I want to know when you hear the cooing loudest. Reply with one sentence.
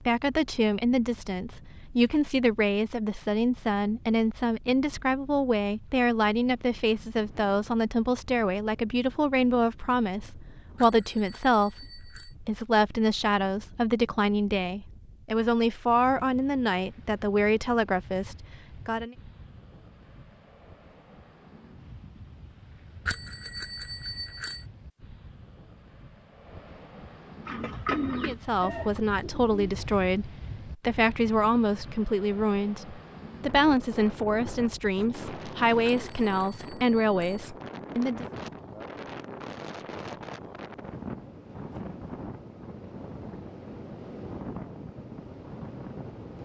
The loudest moment of the cooing is at 28 seconds.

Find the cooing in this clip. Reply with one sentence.
The cooing can be heard from 27.4 to 29.9 s.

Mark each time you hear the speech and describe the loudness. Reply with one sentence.
The speech can be heard from 0.1 to 19.1 s, at a steady volume; and from 28.2 to 38.2 s, at a steady volume.